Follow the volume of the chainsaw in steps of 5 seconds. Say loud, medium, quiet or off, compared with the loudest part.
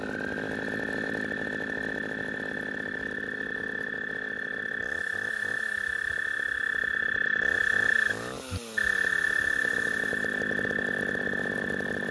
loud, medium, loud.